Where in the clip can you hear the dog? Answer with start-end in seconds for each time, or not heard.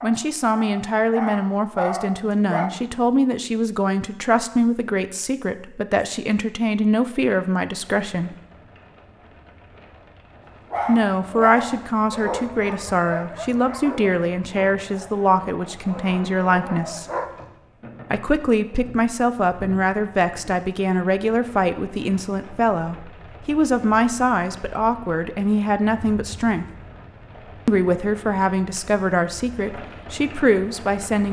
0.0-2.7, 10.4-17.3.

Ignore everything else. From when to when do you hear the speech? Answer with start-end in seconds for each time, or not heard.
0.0-8.3, 10.8-17.1, 18.1-26.6, 27.6-31.2.